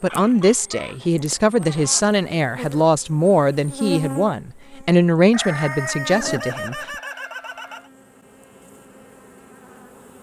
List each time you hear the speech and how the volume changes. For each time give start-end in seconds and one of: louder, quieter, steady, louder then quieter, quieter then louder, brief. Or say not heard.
0.0-6.8 steady.